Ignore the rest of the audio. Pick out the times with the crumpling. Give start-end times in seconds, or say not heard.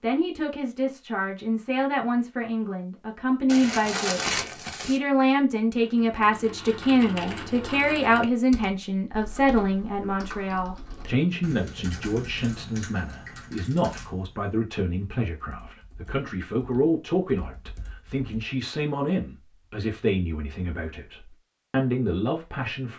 3.5-5.0.